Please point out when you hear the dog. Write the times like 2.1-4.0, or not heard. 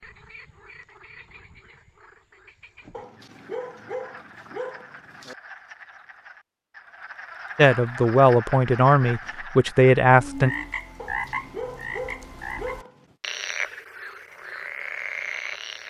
2.9-5.3, 10.9-13.2.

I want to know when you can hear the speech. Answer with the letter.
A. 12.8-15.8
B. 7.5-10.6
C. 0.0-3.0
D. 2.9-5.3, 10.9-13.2
B.